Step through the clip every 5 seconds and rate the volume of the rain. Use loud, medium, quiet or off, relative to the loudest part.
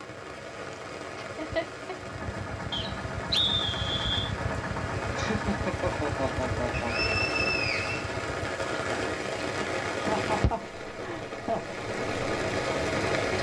medium, loud, loud.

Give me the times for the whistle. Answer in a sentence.
The whistle can be heard from 2.7 to 4.3 s and from 6.7 to 8.1 s.